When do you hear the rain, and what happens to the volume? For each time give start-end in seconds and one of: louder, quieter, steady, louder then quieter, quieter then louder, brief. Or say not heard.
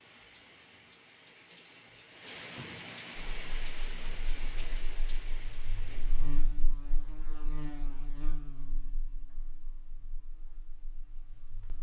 0.0-6.4 louder then quieter.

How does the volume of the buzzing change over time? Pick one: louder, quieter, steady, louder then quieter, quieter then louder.
louder then quieter.